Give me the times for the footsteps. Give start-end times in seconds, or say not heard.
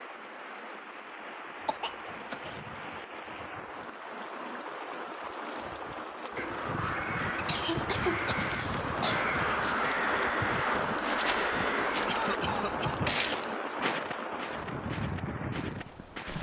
13.1-16.3.